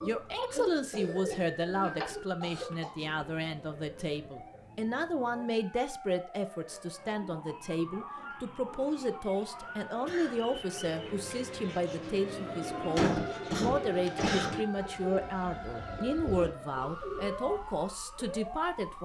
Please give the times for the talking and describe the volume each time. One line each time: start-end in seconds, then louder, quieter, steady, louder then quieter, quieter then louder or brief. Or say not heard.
0.0-18.9 steady.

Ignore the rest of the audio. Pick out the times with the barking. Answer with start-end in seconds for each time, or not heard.
not heard.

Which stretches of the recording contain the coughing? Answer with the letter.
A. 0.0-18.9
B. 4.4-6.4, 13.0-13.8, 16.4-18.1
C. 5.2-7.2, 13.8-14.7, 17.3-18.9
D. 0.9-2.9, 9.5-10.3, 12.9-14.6
D.